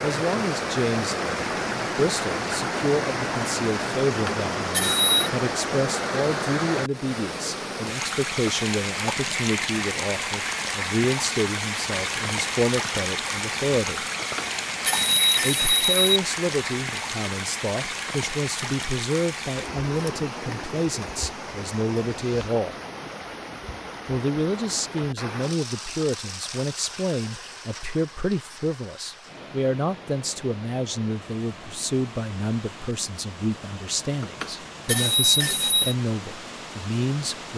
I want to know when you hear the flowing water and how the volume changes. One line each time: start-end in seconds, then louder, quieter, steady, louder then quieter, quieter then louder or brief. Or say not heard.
0.0-37.5 quieter.